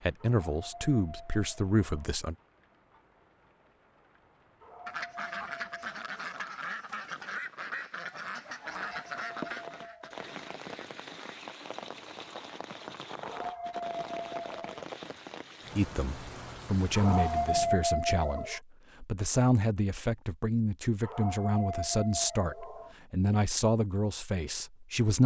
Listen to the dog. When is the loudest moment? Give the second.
18 s.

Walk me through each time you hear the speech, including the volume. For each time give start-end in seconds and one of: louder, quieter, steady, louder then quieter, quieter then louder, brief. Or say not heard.
0.0-2.4 brief
15.8-25.2 steady.